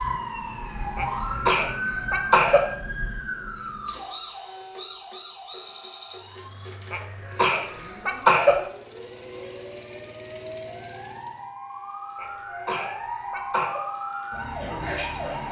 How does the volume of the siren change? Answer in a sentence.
The loudness of the siren goes down, then up.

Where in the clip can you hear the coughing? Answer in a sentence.
You can hear the coughing from 0.9 to 2.7 s, from 6.9 to 8.7 s and from 12.2 to 13.8 s.